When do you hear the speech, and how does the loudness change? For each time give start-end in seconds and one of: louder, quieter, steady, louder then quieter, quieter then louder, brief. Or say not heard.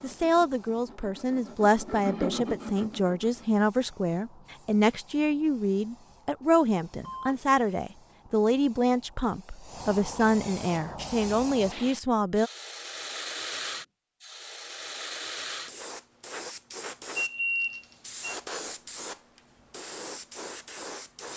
0.0-12.5 steady.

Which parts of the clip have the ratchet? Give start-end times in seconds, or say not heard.
not heard.